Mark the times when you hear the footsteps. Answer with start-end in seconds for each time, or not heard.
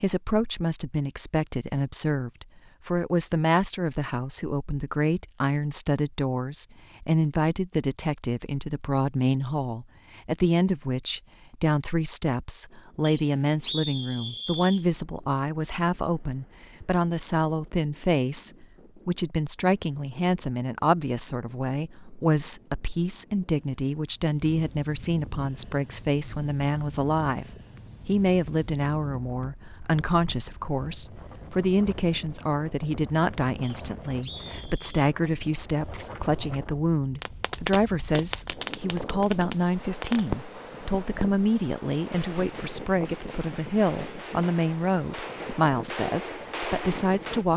not heard.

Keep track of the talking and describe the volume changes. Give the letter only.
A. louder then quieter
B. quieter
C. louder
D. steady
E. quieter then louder
D.